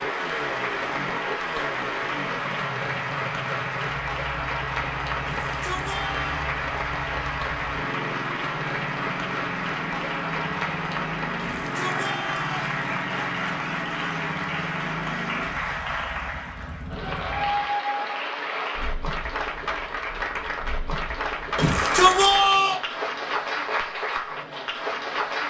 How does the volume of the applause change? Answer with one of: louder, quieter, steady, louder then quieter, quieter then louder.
steady.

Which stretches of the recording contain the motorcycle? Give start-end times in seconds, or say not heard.
0.0-17.7.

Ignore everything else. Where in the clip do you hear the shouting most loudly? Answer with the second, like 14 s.
22 s.